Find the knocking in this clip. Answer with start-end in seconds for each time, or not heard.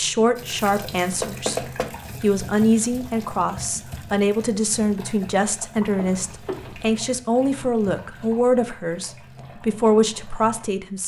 1.2-1.9, 6.0-7.0.